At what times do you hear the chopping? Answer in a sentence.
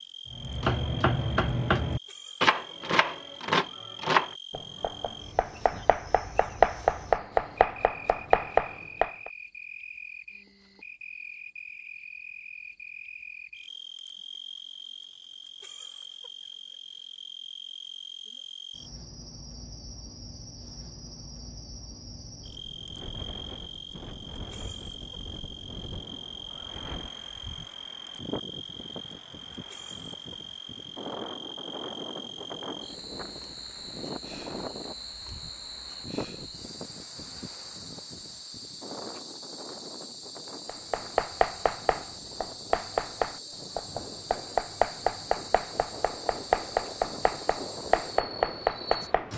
You can hear the chopping from 0.3 to 9.3 s and from 40.6 to 49.3 s.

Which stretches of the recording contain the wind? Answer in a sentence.
The wind can be heard from 22.4 to 49.3 s.